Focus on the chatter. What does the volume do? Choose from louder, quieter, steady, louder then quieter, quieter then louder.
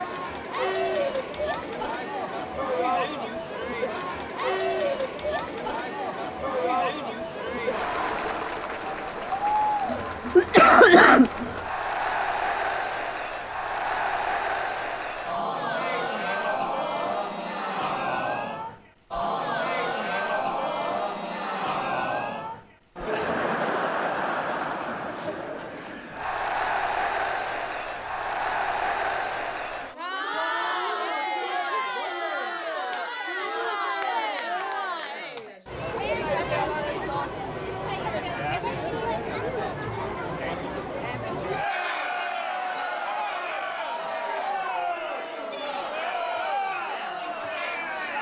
steady.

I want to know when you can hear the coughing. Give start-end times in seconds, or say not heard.
9.9-11.6.